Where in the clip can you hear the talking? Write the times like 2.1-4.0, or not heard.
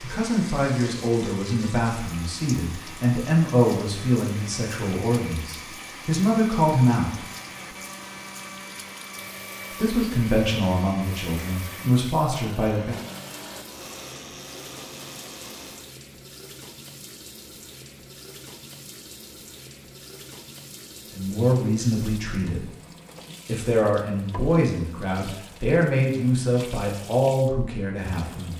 0.0-7.2, 9.8-13.0, 21.1-22.6, 23.4-28.5.